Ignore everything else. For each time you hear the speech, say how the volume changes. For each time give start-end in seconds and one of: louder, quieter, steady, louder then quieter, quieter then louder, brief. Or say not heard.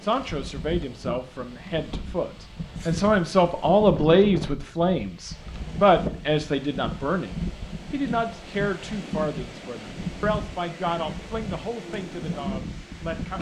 0.0-13.3 louder then quieter.